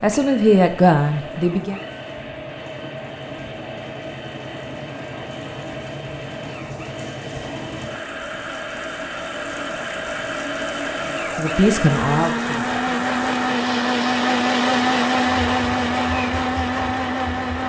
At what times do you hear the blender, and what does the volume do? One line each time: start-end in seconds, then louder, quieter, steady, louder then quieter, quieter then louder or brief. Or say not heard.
0.0-17.6 louder.